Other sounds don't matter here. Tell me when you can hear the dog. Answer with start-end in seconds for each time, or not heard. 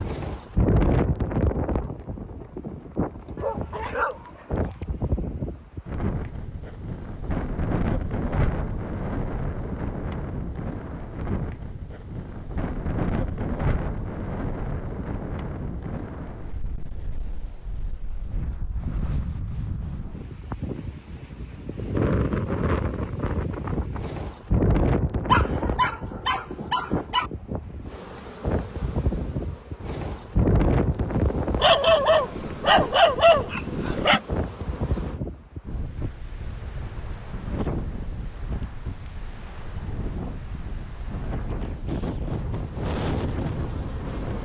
3.4-4.8, 25.3-27.3, 31.6-34.2.